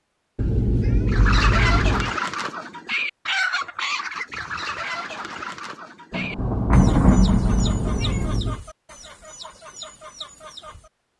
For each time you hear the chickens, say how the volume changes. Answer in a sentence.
You can hear the chickens from 1.1 to 10.9 s, getting quieter.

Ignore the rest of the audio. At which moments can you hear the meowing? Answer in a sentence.
You can hear the meowing from 0.3 to 2.1 s and from 6.3 to 8.6 s.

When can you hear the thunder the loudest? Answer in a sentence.
The loudest moment of the thunder is at 7 seconds.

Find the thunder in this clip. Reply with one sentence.
The thunder can be heard from 6.1 to 8.4 s.